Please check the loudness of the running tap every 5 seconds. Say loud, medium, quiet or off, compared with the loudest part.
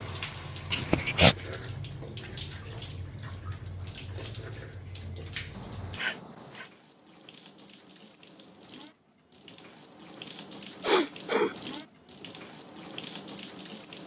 medium, medium, loud.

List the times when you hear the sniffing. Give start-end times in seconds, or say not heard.
0.7-1.4, 5.5-6.7, 10.8-11.6.